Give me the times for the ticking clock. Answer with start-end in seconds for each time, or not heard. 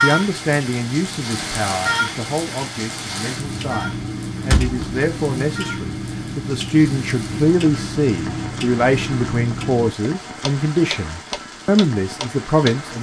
0.1-12.8.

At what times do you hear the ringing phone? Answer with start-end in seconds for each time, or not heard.
not heard.